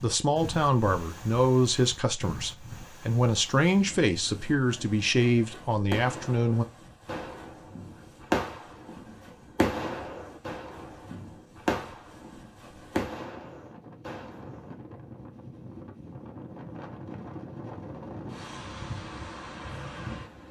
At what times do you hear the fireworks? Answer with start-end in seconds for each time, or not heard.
5.4-14.8.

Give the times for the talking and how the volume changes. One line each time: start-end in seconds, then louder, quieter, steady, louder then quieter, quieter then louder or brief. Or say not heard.
0.0-6.7 steady.